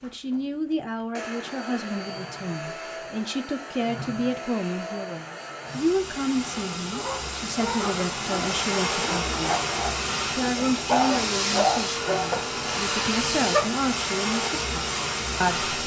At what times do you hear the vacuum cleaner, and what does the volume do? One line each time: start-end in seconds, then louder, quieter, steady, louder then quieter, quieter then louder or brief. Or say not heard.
0.0-15.8 louder.